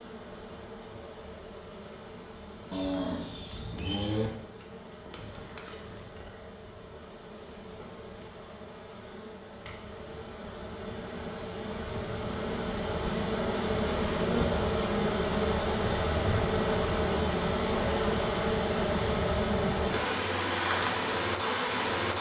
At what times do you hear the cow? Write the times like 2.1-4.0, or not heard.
2.7-4.3.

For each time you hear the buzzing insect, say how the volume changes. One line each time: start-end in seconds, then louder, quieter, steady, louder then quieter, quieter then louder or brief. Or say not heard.
0.0-22.1 louder.